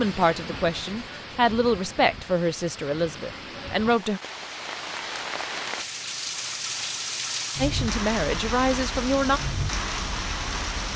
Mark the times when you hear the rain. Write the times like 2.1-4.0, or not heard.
0.0-10.9.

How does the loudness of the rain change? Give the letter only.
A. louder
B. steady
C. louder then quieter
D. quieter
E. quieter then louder
A.